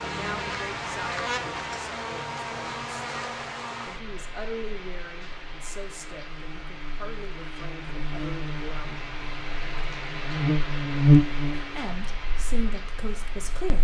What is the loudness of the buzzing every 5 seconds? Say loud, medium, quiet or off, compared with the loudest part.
medium, quiet, loud.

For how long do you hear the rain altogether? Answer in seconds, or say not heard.
14 s.